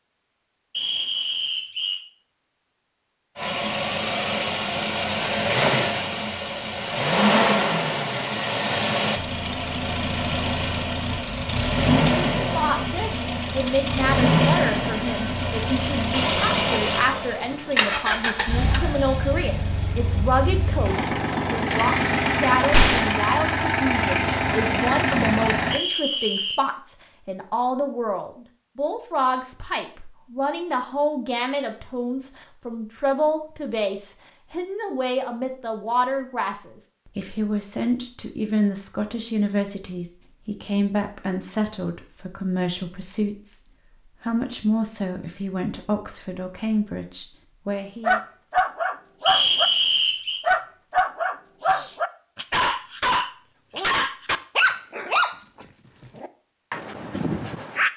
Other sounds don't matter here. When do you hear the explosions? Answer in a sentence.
The explosions can be heard from 22.7 to 23.1 s.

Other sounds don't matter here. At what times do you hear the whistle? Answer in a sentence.
You can hear the whistle from 0.7 to 2.0 s, from 25.7 to 26.6 s and from 49.2 to 50.4 s.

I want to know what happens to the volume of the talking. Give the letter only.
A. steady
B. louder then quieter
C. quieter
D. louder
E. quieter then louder
A.